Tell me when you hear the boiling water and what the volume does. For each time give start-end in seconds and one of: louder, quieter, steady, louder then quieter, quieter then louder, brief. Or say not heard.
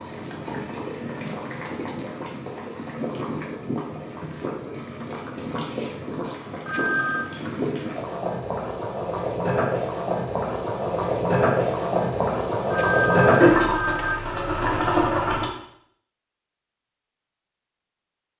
0.0-15.5 louder.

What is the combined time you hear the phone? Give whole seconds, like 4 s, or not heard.
2 s.